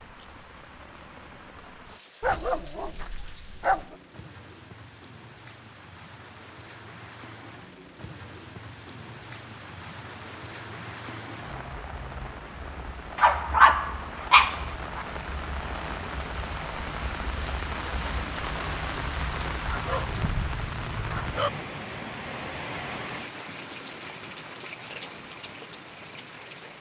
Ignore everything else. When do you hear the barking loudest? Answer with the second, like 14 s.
14 s.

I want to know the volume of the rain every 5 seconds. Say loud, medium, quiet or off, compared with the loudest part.
quiet, medium, medium, loud, loud, medium.